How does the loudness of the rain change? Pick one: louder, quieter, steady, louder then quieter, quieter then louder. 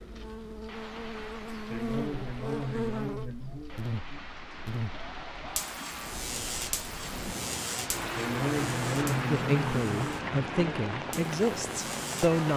louder.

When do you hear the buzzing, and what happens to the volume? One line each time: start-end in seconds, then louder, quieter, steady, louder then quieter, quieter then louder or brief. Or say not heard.
0.0-12.5 quieter.